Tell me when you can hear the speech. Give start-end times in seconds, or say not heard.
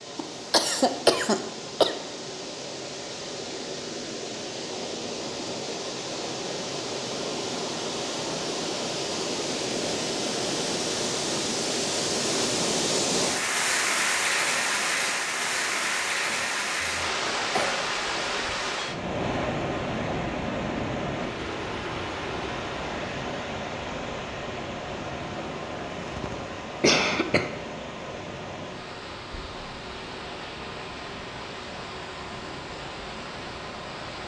not heard.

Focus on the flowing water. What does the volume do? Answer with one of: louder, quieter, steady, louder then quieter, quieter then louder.
louder then quieter.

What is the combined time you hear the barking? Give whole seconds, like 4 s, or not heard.
not heard.